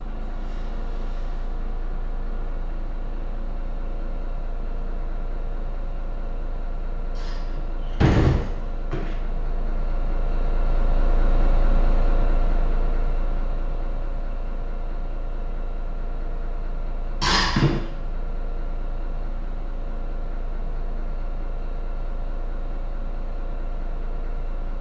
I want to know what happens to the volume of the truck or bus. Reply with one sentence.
The volume of the truck or bus goes up, then down.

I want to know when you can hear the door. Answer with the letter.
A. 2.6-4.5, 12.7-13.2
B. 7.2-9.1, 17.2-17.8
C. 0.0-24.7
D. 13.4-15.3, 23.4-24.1
B.